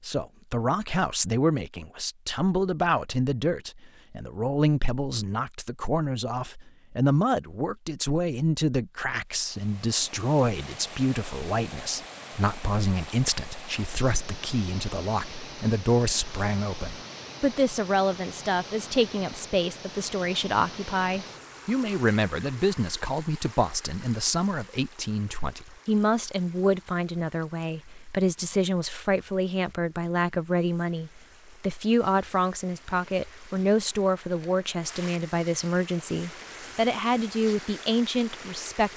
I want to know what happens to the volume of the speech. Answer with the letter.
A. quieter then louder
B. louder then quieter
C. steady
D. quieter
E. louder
C.